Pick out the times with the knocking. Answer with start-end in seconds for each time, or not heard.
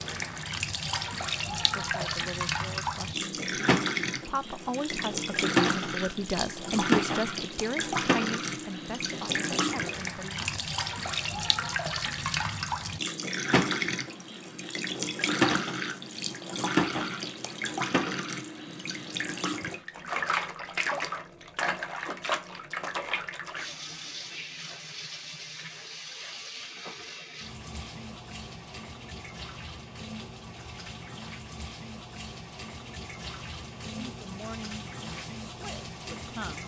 9.1-9.7.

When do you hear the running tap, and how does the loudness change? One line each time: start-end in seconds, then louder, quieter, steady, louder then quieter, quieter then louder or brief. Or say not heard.
0.0-36.6 quieter.